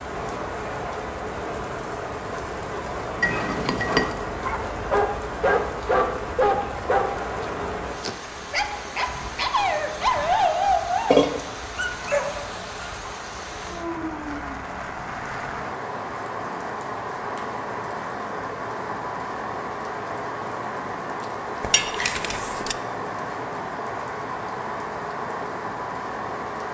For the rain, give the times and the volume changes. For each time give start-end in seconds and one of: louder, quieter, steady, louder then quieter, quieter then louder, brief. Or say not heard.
0.0-26.6 steady.